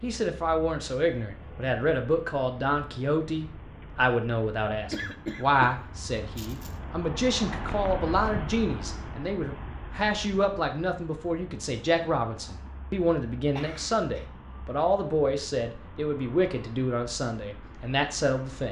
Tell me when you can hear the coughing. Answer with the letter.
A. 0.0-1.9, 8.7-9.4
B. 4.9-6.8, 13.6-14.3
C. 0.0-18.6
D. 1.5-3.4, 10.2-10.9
B.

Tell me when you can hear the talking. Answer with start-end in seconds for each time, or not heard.
0.0-18.6.